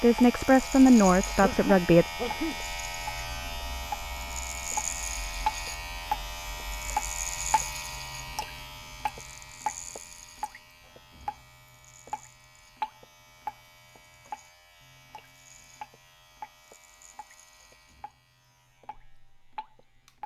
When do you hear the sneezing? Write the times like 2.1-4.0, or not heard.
1.4-2.5.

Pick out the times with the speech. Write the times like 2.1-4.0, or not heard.
0.0-2.1.